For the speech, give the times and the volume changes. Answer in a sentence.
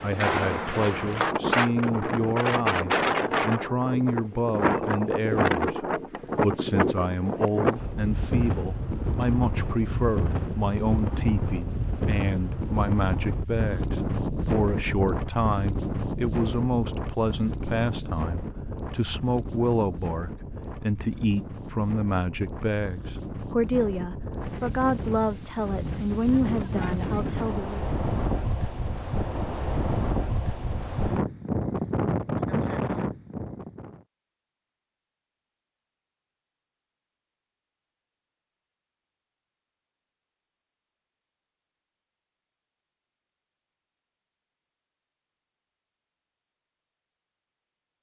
The speech can be heard from 0.0 to 27.9 s, at a steady volume.